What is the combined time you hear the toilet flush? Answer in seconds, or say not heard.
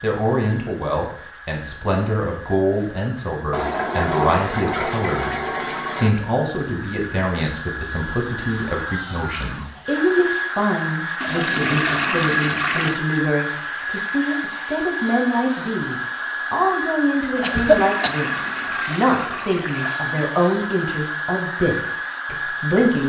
7 s.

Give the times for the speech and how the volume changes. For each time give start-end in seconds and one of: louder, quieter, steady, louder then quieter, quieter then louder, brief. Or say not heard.
0.0-23.0 steady.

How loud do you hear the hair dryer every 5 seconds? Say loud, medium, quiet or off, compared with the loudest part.
quiet, medium, loud, loud, loud.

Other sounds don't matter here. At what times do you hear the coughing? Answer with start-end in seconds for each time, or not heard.
17.4-18.1.